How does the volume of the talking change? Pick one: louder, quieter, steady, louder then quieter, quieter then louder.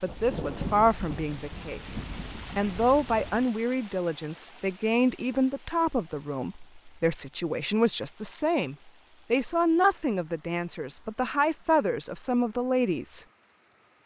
steady.